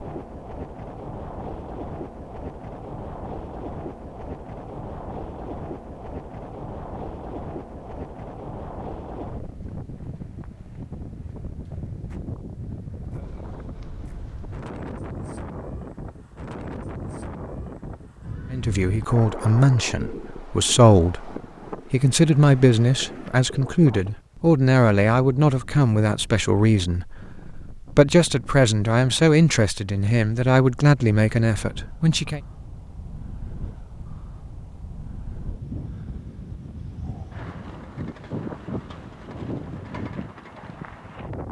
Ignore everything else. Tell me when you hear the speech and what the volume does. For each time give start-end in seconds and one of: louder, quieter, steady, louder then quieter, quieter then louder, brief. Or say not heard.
18.5-32.4 steady.